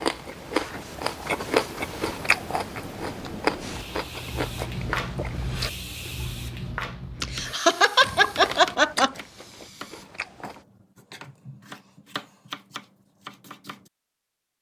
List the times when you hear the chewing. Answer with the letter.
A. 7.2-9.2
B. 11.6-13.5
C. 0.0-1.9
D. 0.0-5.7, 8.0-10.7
D.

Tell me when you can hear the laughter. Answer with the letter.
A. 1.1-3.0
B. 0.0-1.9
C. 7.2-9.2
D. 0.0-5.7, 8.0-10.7
C.